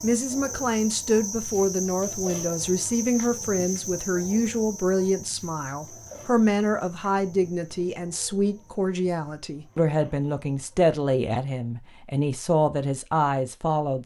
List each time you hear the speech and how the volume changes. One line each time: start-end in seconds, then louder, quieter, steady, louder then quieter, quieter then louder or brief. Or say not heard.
0.0-14.0 steady.